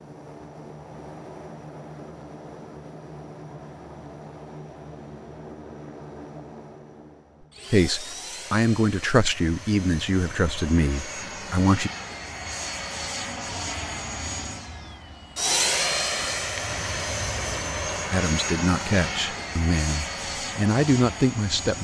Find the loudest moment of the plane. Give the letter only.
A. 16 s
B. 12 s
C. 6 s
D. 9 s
A.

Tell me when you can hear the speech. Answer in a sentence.
You can hear the speech from 7.7 to 11.9 s and from 18.1 to 21.7 s.